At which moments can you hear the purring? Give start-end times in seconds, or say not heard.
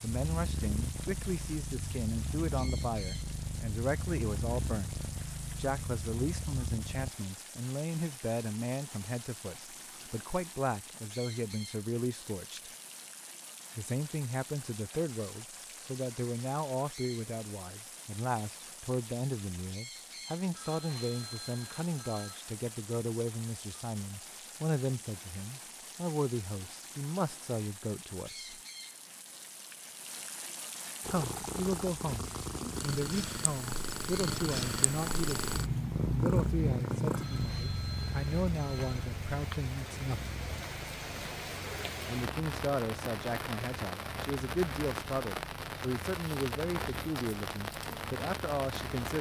0.1-7.2, 31.0-49.1.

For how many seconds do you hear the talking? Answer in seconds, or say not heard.
44 s.